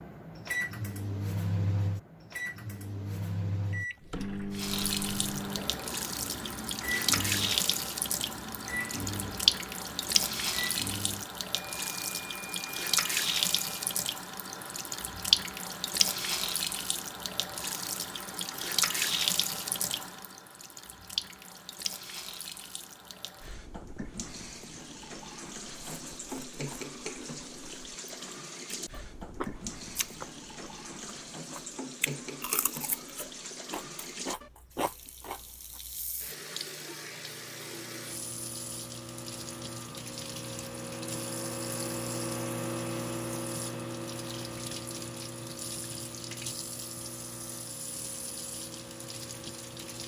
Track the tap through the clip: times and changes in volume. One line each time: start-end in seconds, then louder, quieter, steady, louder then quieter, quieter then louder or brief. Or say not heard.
4.5-50.0 quieter.